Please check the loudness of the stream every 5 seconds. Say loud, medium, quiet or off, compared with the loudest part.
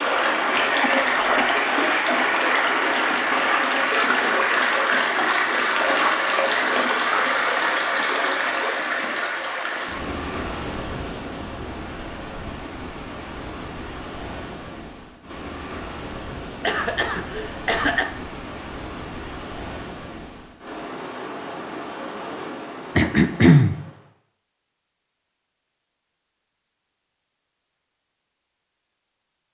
loud, loud, quiet, quiet, quiet, off.